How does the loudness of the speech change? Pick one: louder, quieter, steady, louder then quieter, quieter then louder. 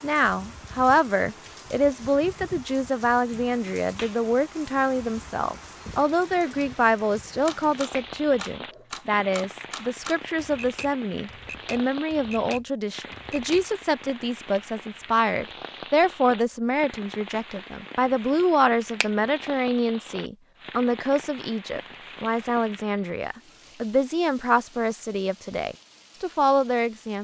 steady.